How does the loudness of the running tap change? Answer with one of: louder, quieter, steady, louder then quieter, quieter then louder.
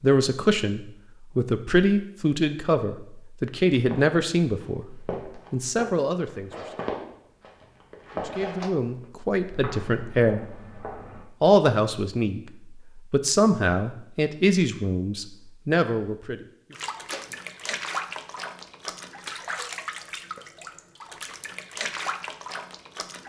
quieter then louder.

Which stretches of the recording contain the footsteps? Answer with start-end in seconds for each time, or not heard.
3.9-11.2.